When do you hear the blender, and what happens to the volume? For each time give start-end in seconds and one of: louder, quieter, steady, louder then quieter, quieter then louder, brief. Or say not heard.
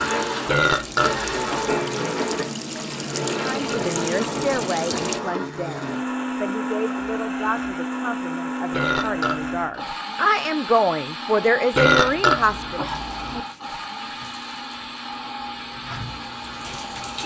0.0-17.2 quieter.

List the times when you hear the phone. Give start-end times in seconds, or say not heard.
not heard.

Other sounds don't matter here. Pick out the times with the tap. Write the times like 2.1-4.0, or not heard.
0.0-5.2, 12.9-17.2.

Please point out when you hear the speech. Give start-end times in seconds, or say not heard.
3.4-12.8.